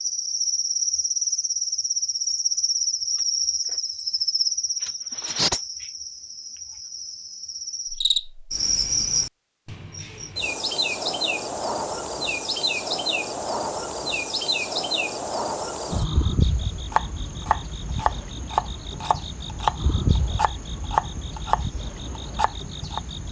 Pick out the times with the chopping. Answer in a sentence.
The chopping can be heard from 16.9 to 23.0 s.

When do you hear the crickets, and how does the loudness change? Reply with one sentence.
You can hear the crickets from 0.0 to 23.2 s, getting quieter.